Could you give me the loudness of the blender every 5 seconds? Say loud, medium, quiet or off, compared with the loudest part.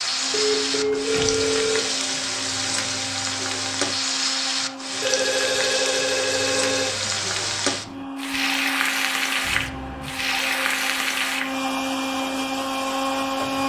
medium, medium, loud.